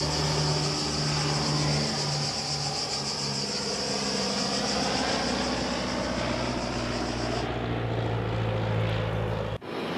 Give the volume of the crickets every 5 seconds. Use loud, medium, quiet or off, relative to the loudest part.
loud, medium.